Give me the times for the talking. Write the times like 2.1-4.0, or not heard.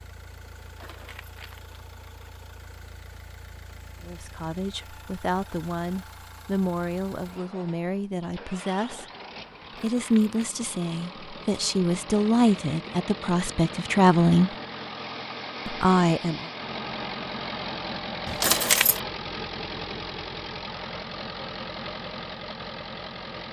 4.0-9.1, 9.8-14.5, 15.7-16.4.